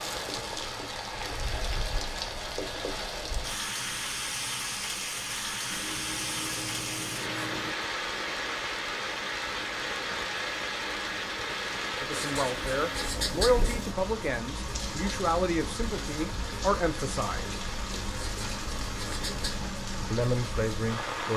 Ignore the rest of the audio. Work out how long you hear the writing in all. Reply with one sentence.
The writing can be heard for 8 seconds in total.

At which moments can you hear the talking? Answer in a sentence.
You can hear the talking from 12.0 to 17.6 s and from 20.1 to 21.3 s.